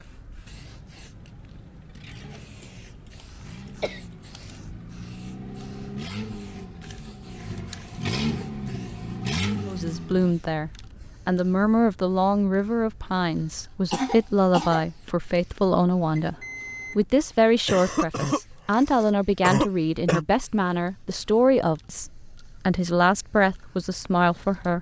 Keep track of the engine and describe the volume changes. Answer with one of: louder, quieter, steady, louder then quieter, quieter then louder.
louder.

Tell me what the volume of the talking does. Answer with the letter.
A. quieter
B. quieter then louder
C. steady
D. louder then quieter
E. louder
C.